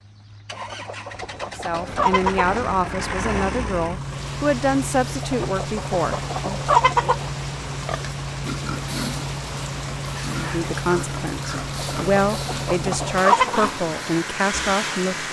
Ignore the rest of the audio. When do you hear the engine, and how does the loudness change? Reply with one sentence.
You can hear the engine from 0.0 to 15.2 s, at a steady volume.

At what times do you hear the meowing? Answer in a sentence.
The meowing can't be heard in this clip.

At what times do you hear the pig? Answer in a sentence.
You can hear the pig from 7.8 to 14.8 s.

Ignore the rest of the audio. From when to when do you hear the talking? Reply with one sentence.
You can hear the talking from 1.6 to 7.2 s and from 10.2 to 15.2 s.